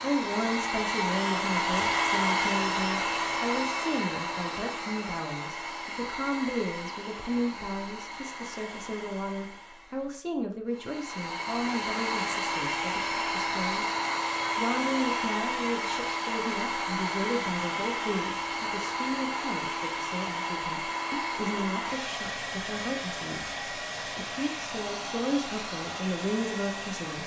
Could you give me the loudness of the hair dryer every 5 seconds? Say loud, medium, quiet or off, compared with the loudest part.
loud, medium, loud, loud, medium, medium.